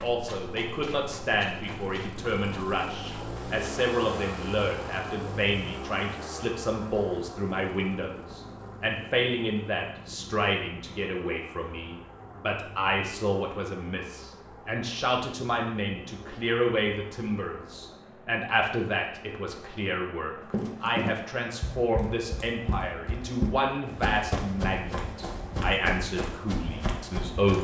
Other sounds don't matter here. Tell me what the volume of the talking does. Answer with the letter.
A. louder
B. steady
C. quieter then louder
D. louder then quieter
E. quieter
B.